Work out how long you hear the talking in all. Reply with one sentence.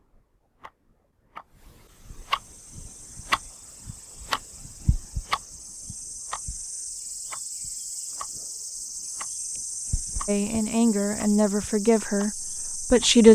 You can hear the talking for 3 seconds altogether.